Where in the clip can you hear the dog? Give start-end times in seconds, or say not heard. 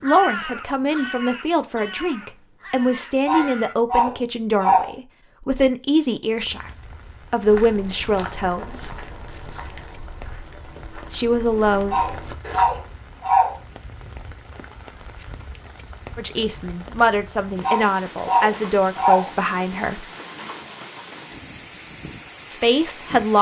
3.2-4.9, 11.9-13.6, 17.6-19.3.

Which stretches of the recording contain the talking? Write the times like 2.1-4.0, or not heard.
0.0-6.7, 7.3-9.0, 11.1-11.9, 16.1-20.1, 22.5-23.3.